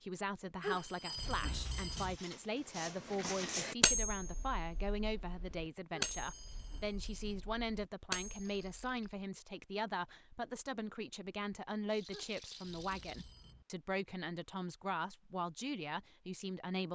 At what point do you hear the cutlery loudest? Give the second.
4 s.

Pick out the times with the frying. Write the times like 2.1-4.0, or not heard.
not heard.